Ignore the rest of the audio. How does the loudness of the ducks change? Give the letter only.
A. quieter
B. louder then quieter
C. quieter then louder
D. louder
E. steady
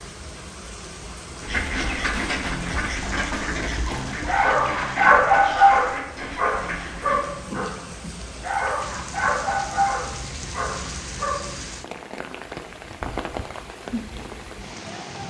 A.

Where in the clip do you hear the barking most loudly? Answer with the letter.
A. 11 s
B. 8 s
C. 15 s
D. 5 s
D.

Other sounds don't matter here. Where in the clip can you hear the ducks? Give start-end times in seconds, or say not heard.
1.4-7.3.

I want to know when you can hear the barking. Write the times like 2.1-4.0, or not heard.
4.2-11.5.